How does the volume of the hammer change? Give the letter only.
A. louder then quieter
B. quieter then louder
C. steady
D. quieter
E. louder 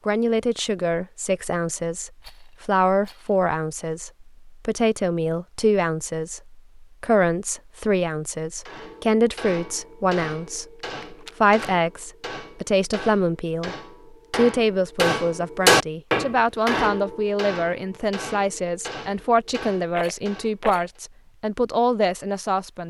A.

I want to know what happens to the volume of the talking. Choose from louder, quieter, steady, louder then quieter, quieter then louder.
steady.